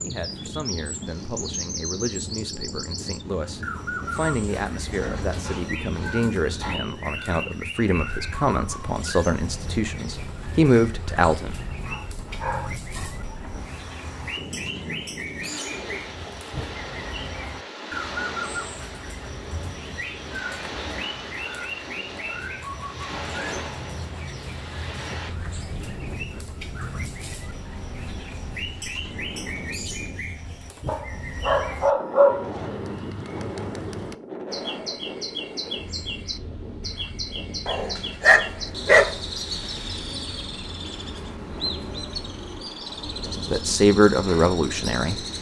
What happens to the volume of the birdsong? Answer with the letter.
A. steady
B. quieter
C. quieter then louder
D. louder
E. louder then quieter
A.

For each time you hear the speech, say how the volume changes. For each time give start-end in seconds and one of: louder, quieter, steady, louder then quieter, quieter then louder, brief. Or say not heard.
0.0-11.6 louder
43.5-45.2 brief.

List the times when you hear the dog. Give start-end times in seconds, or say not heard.
4.0-6.8, 11.8-13.3, 30.9-32.5, 37.6-39.1.